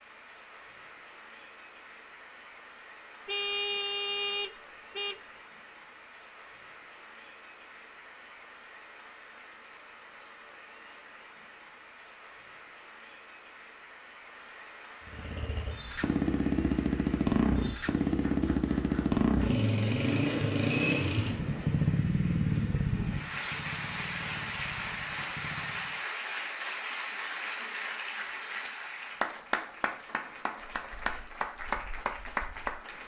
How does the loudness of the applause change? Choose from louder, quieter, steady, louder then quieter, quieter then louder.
louder.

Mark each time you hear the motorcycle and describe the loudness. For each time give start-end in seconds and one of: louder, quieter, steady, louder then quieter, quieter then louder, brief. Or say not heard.
15.1-26.1 quieter.